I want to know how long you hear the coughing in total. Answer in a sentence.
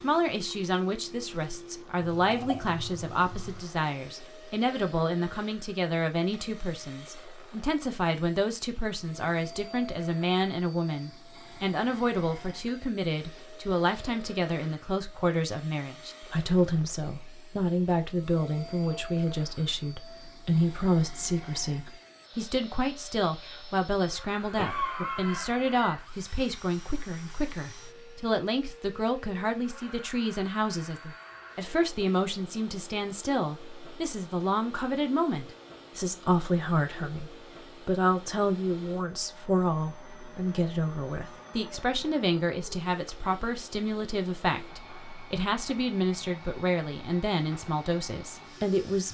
You can hear the coughing for 3 seconds altogether.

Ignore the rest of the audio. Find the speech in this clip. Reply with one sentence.
The speech can be heard from 0.0 to 49.0 s.